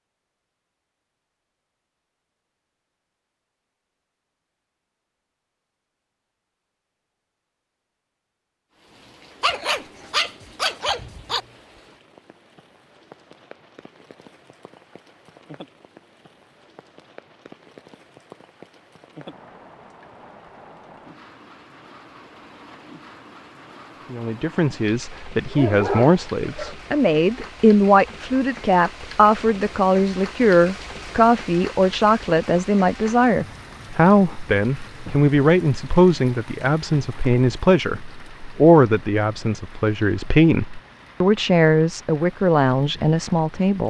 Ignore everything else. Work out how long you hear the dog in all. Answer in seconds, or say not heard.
3 s.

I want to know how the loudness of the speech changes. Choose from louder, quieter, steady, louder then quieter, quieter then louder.
steady.